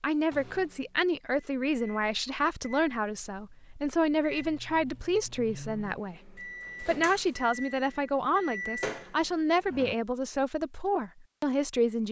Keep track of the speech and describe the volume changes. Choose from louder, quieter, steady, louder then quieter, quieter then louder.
steady.